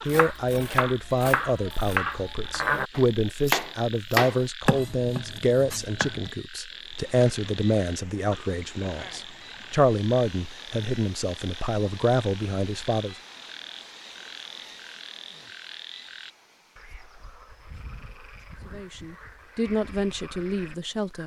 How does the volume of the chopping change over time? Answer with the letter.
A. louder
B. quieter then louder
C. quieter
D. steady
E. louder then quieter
E.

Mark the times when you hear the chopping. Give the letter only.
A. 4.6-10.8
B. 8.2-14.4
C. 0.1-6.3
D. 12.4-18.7
C.